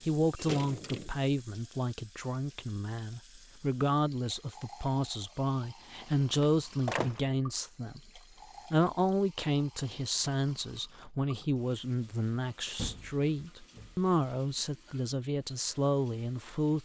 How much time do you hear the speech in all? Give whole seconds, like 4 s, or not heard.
17 s.